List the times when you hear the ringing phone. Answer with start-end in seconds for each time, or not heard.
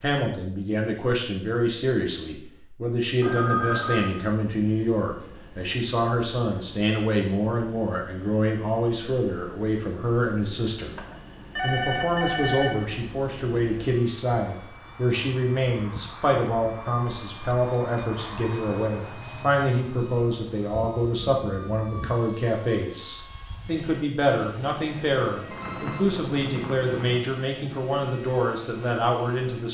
3.2-4.1, 10.9-12.8, 25.5-27.2.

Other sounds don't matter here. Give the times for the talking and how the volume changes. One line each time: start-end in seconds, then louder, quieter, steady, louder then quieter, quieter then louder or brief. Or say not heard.
0.0-10.9 steady
11.6-29.6 steady.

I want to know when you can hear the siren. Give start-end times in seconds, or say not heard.
not heard.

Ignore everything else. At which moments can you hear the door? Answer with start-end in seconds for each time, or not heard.
not heard.